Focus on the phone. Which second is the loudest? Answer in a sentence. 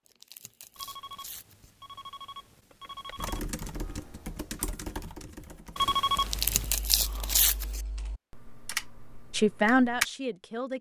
The loudest moment of the phone is at 6 seconds.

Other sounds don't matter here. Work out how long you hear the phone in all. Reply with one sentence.
The phone can be heard for 4 seconds in total.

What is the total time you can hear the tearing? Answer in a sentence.
The tearing can be heard for 3 seconds in total.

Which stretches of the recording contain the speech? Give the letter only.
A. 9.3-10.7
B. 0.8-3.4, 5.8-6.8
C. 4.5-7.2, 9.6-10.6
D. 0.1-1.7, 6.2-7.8
A.